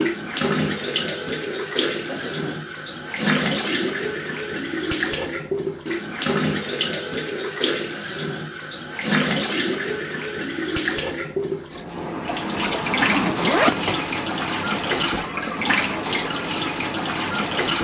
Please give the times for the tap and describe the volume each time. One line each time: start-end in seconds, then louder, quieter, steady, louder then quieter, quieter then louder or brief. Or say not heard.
0.0-17.7 steady.